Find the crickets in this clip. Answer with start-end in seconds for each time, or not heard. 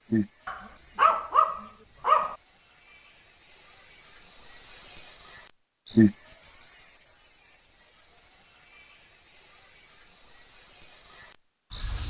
0.0-12.0.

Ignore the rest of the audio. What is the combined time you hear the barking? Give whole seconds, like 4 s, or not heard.
2 s.